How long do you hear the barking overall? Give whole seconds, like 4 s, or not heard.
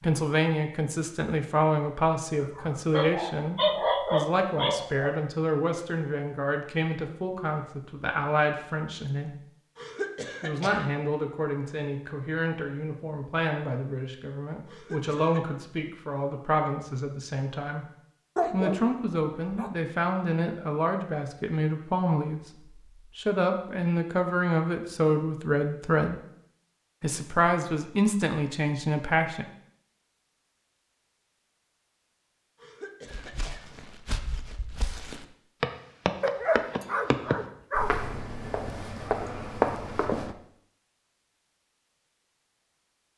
6 s.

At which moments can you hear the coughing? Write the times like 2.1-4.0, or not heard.
9.8-10.8, 14.7-15.4, 32.6-33.6.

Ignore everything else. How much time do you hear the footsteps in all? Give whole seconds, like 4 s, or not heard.
7 s.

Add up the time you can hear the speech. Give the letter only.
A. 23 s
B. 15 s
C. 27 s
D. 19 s
C.